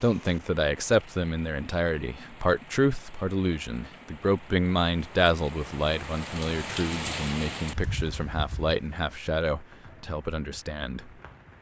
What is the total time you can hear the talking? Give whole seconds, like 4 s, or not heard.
11 s.